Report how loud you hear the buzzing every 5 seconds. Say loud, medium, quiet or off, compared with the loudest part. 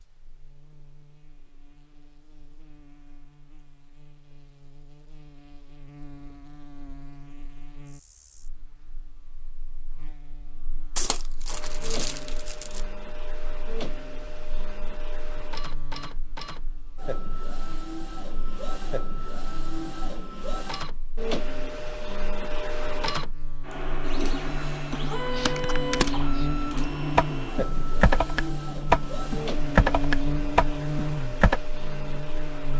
quiet, quiet, quiet, quiet, medium, loud, loud.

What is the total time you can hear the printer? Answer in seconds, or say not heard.
21 s.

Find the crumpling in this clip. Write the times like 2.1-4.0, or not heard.
10.9-12.8.